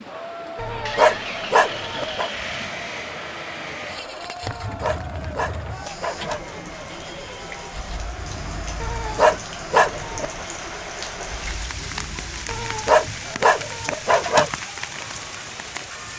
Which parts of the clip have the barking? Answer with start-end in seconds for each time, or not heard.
0.6-2.3, 4.4-6.4, 8.8-10.3, 12.4-14.5.